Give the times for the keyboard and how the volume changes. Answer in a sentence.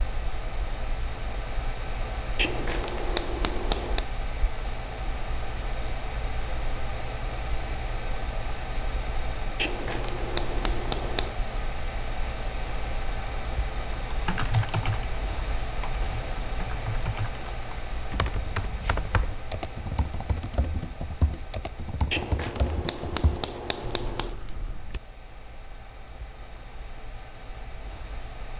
The keyboard can be heard from 14.1 to 25.0 s, getting quieter.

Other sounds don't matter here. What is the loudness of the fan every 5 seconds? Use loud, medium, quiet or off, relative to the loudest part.
loud, loud, loud, loud, medium, medium.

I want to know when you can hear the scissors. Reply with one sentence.
You can hear the scissors from 2.4 to 4.0 s, from 9.6 to 11.3 s and from 22.1 to 24.4 s.